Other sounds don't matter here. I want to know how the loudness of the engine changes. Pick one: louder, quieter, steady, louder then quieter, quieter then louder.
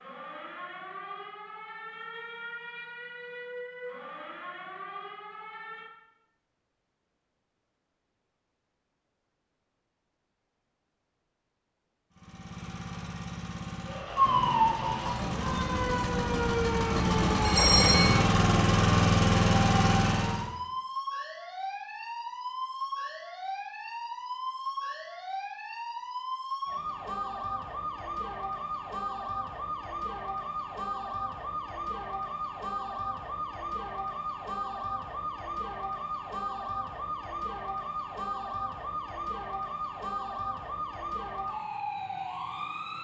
louder.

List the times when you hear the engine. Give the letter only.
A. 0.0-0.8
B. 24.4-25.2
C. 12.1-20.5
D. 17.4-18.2
C.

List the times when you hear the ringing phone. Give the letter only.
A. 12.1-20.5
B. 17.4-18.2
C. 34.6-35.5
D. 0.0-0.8
B.